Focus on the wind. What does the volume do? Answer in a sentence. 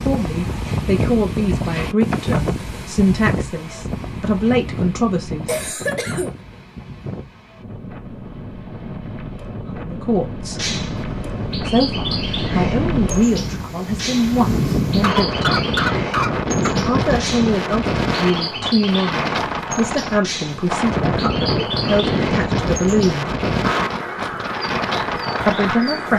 The volume of the wind goes down, then up.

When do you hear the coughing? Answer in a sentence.
The coughing can be heard from 5.5 to 6.3 s and from 15.0 to 16.7 s.